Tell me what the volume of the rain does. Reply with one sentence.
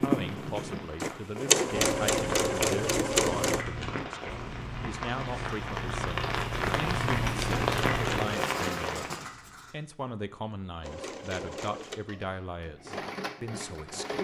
The loudness of the rain goes up.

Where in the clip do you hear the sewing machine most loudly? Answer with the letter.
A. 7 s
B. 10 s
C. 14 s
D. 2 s
D.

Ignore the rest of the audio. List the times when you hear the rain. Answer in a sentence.
You can hear the rain from 0.0 to 9.3 s.